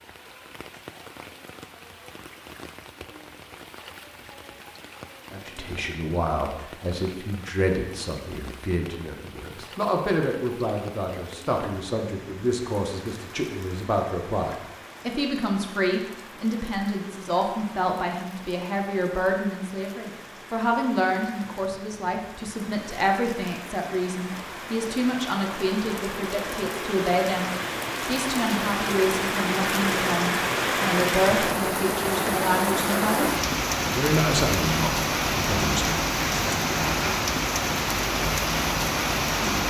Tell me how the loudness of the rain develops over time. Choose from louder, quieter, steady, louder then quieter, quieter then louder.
louder.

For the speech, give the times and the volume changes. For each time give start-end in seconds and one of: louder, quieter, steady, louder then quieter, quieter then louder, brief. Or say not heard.
5.3-36.0 steady.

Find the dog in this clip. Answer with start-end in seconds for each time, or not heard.
not heard.